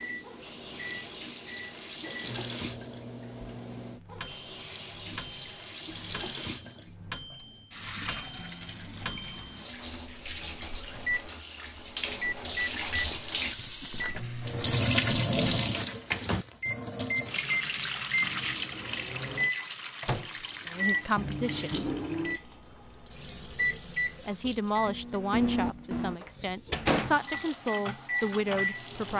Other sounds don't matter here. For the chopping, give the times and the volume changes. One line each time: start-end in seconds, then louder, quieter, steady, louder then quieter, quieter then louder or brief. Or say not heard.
not heard.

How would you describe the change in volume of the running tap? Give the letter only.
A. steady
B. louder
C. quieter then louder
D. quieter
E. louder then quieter
E.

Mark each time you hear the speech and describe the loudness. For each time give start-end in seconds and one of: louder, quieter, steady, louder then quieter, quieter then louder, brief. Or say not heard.
20.6-21.9 brief
24.2-29.1 quieter then louder.